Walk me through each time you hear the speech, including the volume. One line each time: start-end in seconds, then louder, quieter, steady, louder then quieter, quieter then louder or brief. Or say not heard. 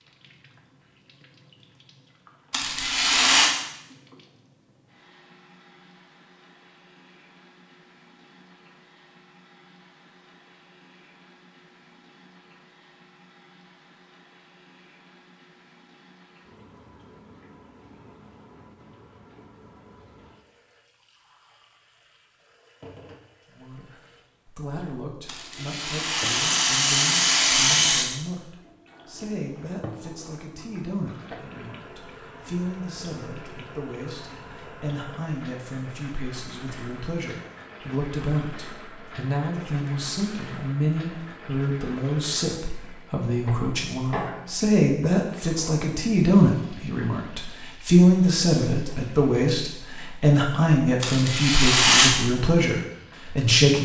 23.5-53.8 louder.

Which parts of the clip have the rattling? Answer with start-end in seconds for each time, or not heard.
2.5-3.5, 25.2-28.1, 51.0-52.1.